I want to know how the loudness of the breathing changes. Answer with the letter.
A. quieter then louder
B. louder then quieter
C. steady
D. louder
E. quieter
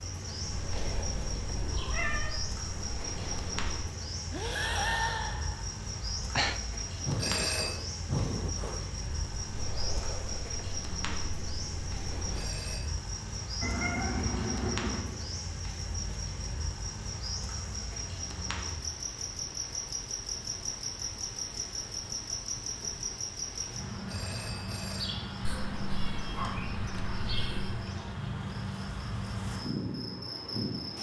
B.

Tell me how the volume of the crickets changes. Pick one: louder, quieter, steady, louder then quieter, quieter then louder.
steady.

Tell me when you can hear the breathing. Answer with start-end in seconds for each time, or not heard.
0.5-12.7.